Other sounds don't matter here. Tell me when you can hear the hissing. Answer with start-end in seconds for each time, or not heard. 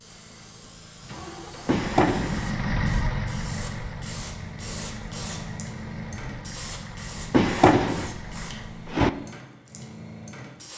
0.0-10.7.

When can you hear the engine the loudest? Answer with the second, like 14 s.
3 s.